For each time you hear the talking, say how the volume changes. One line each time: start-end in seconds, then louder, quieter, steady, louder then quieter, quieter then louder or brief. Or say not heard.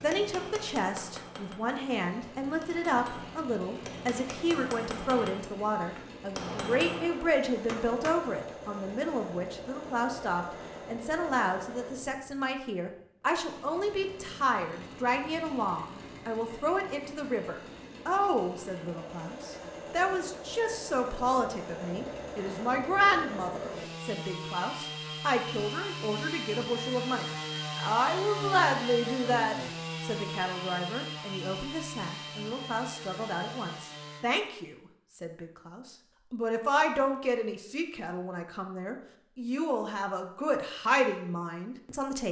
0.0-42.2 steady.